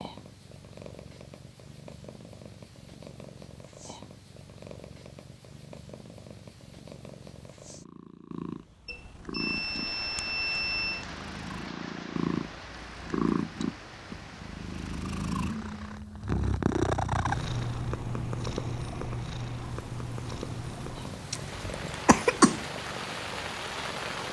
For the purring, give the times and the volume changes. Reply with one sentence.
You can hear the purring from 0.0 to 24.2 s, getting louder then quieter.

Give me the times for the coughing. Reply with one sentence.
You can hear the coughing from 21.3 to 22.6 s.